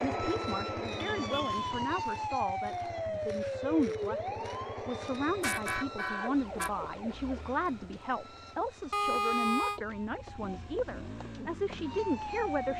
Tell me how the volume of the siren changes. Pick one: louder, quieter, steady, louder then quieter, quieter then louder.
quieter then louder.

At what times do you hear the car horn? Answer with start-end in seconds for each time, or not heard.
1.1-1.7, 4.9-6.9, 8.9-9.8.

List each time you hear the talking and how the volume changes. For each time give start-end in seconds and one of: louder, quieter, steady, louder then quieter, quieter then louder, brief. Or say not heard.
0.0-12.7 steady.